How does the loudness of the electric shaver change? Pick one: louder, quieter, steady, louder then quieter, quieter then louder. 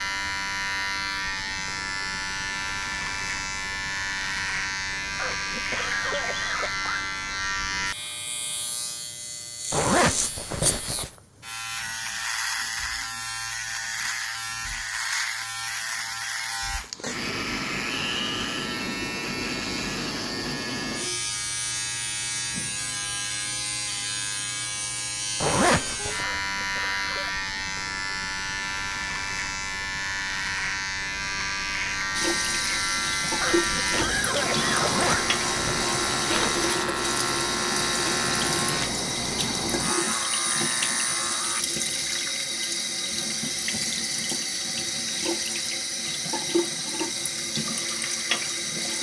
steady.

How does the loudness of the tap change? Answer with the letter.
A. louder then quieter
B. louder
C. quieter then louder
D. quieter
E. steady
E.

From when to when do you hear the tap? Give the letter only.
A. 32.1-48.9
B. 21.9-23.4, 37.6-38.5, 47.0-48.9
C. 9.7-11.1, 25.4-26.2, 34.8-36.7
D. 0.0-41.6
A.